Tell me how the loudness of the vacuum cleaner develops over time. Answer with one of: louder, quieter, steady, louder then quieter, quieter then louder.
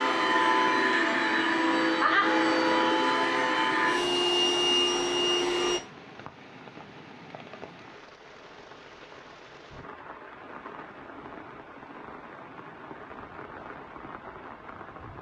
steady.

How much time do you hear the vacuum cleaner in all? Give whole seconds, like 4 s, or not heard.
6 s.